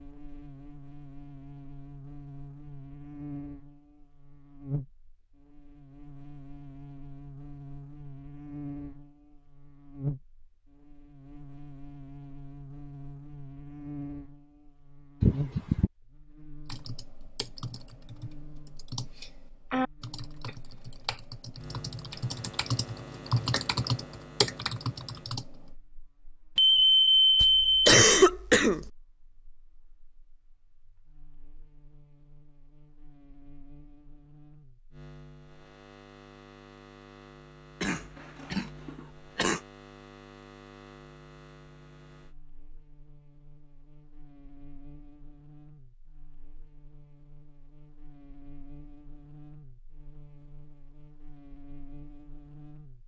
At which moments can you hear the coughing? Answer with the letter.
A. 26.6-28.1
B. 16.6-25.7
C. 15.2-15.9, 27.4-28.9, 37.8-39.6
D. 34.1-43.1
C.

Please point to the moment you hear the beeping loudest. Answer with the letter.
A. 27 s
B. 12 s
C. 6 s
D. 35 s
A.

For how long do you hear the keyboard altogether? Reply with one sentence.
You can hear the keyboard for 9 seconds altogether.